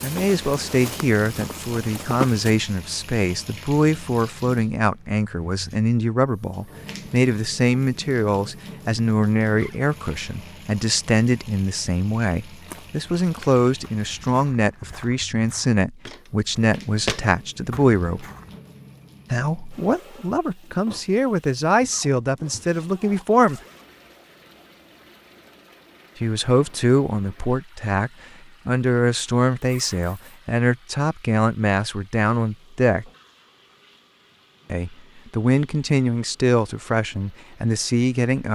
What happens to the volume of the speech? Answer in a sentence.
The volume of the speech stays about the same.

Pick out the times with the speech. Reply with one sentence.
The speech can be heard from 0.0 to 18.2 s, from 19.3 to 23.6 s, from 26.2 to 33.0 s and from 34.7 to 38.5 s.